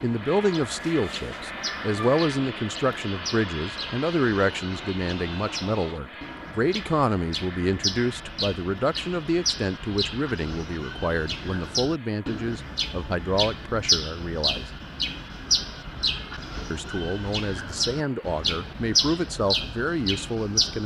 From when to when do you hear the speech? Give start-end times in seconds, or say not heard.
0.0-14.7, 16.7-20.8.